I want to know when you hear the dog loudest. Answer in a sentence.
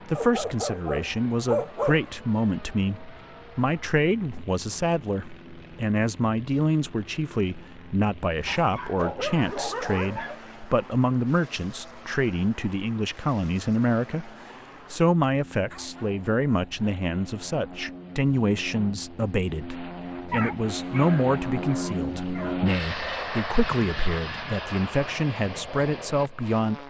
The loudest moment of the dog is at 2 seconds.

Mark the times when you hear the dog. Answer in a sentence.
You can hear the dog from 0.1 to 2.0 s, from 8.4 to 10.4 s, from 15.7 to 17.1 s and from 20.3 to 22.6 s.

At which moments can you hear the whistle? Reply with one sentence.
The whistle can't be heard in this clip.